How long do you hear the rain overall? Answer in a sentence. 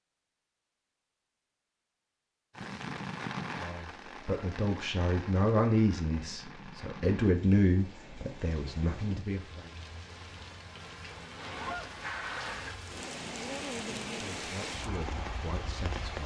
You can hear the rain for 14 seconds altogether.